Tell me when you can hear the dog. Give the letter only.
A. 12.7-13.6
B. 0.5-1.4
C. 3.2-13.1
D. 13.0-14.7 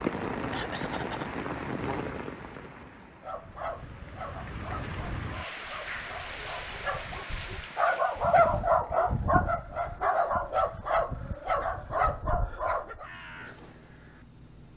C.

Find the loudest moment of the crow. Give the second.
13 s.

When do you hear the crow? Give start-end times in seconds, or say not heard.
13.0-14.7.